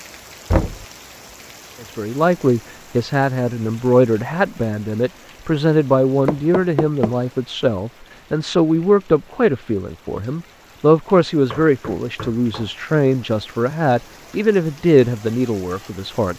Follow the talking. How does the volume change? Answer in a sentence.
The volume of the talking stays about the same.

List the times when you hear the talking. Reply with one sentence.
The talking can be heard from 1.8 to 16.3 s.